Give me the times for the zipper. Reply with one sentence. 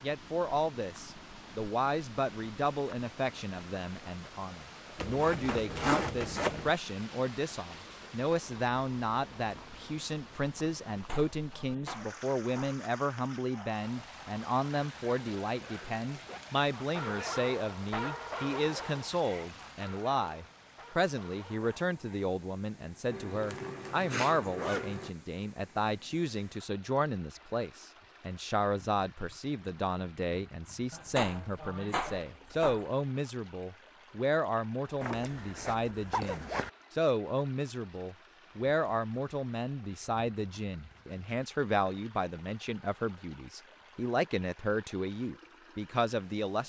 You can hear the zipper from 5.0 to 6.7 s, from 23.1 to 25.1 s and from 35.0 to 36.7 s.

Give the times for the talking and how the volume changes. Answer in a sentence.
You can hear the talking from 0.0 to 46.6 s, at a steady volume.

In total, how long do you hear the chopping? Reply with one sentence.
The chopping can be heard for 4 seconds in total.